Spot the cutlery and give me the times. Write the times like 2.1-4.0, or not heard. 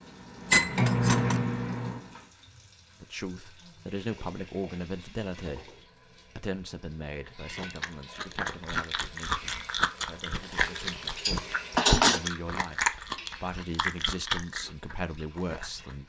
0.5-1.4, 10.6-12.2.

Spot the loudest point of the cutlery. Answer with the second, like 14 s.
12 s.